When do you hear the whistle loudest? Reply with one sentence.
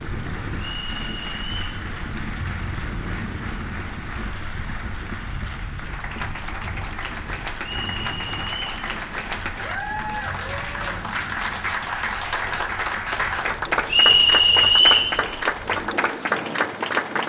The volume of the whistle peaks at 15 seconds.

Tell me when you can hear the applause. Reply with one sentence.
The applause can be heard from 0.0 to 17.2 s.